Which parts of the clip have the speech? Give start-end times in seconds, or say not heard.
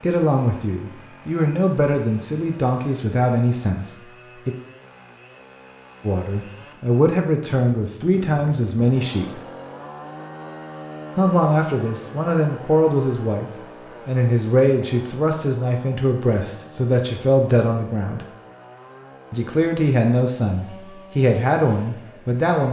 0.0-4.5, 6.0-9.4, 11.2-13.4, 14.1-18.2, 19.3-22.6.